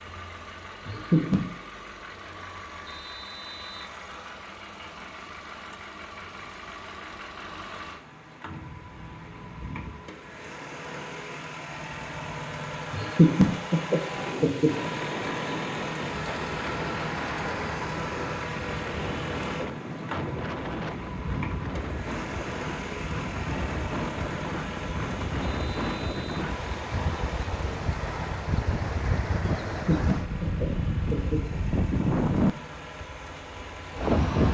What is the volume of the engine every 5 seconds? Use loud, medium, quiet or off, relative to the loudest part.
medium, medium, loud, loud, loud, medium, medium.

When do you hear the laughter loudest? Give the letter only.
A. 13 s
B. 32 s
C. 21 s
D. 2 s
A.